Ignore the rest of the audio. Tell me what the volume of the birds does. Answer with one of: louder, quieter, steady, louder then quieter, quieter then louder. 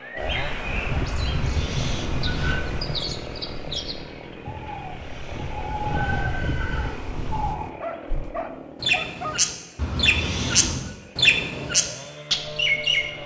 louder.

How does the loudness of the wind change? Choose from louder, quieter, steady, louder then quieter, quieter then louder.
quieter then louder.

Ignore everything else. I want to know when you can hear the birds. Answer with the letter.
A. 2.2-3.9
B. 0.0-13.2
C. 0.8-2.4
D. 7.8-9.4
B.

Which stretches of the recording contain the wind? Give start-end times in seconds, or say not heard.
0.1-7.5.